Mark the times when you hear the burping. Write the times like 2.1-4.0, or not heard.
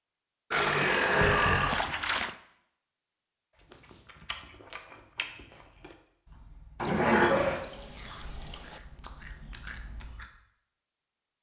0.5-1.8, 6.8-7.6.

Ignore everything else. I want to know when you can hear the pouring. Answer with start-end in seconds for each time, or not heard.
0.5-2.4, 6.8-8.8.